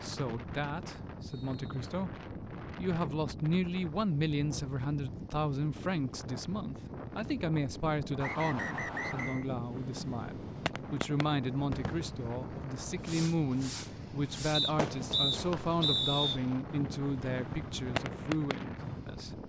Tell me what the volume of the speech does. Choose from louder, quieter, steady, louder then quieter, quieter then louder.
steady.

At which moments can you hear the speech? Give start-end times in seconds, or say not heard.
0.0-19.4.